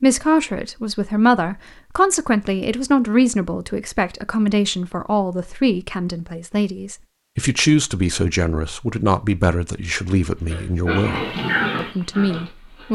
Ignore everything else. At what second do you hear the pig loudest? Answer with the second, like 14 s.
12 s.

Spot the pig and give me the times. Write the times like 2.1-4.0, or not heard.
10.3-12.9.